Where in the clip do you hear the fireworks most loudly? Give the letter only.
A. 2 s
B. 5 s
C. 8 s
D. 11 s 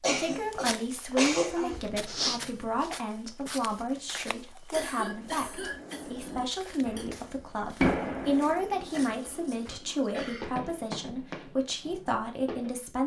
C.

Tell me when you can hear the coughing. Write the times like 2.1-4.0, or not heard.
0.0-1.8, 4.7-7.0, 8.9-10.5.